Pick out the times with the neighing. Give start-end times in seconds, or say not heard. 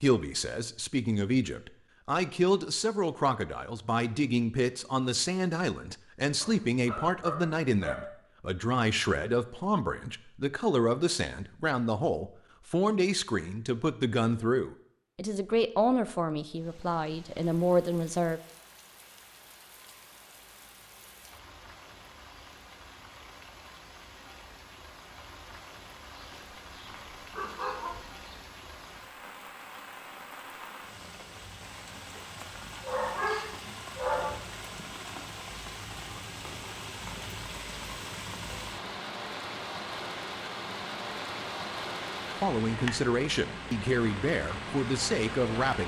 not heard.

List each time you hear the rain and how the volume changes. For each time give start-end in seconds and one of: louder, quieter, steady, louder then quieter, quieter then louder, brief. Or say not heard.
16.4-45.8 louder.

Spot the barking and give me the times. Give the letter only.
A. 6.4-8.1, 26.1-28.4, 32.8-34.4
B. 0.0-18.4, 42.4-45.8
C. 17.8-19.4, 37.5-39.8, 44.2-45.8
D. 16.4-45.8
A.